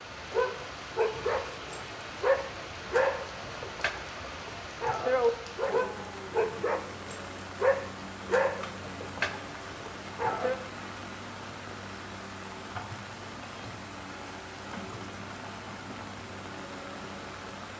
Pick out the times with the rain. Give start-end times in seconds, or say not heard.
0.0-17.7.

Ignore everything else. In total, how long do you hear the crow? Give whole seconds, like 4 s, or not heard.
not heard.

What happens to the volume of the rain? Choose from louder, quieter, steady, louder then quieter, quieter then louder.
steady.